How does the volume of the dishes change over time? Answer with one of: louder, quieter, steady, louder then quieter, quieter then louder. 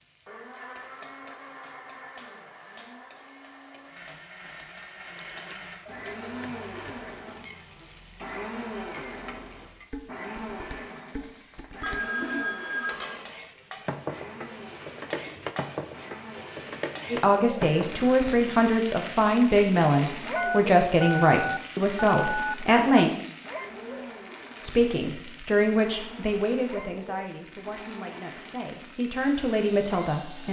louder.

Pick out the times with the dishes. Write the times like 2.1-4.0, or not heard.
8.9-18.1.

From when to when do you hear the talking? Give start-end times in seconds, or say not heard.
17.1-23.1, 24.6-30.4.